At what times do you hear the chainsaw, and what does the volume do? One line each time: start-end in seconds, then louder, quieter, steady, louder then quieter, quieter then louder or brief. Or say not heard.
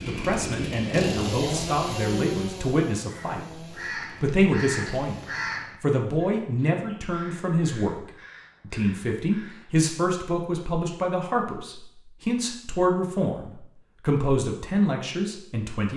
0.0-5.7 quieter.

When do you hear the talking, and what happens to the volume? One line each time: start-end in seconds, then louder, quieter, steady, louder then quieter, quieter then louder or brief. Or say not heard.
0.0-15.9 steady.